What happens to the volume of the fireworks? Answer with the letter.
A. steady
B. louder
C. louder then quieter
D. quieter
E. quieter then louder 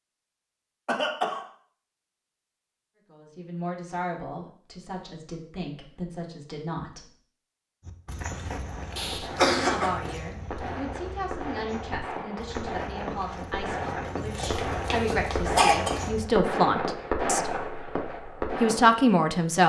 B.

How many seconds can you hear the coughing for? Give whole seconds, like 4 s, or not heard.
3 s.